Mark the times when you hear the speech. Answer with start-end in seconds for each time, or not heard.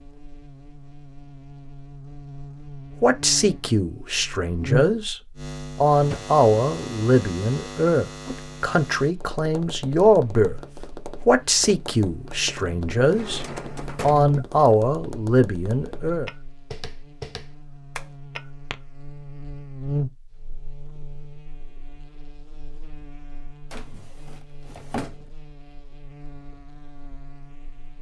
3.0-5.2, 5.8-10.6, 11.2-16.3.